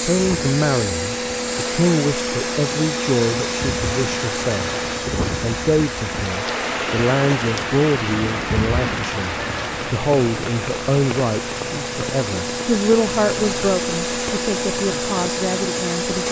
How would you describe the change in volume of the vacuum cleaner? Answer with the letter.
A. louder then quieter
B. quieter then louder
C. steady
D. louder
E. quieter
B.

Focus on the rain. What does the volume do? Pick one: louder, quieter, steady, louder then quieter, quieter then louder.
louder then quieter.